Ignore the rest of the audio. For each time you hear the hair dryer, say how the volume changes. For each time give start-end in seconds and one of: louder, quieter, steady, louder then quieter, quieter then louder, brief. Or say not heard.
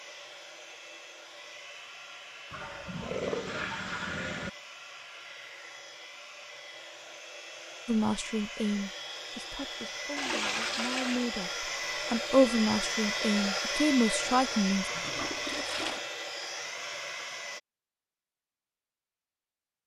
0.0-17.6 louder.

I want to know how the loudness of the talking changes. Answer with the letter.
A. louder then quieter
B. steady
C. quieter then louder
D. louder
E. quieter
C.